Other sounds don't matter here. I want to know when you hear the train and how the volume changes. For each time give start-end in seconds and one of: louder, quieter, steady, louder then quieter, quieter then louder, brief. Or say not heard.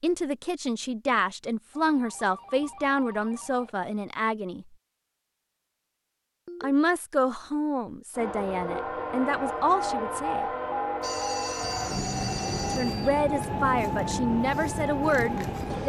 8.2-15.8 steady.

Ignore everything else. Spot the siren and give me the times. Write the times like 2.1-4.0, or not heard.
9.3-15.8.